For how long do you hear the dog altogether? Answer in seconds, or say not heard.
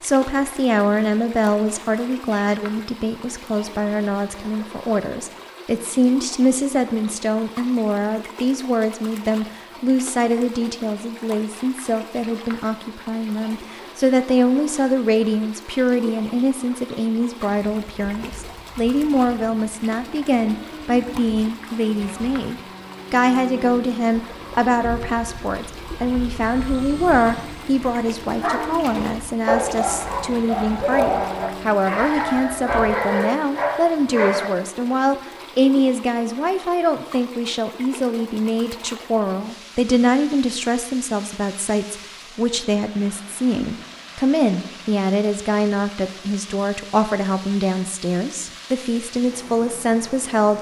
6 s.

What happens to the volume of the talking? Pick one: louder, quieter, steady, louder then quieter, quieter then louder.
steady.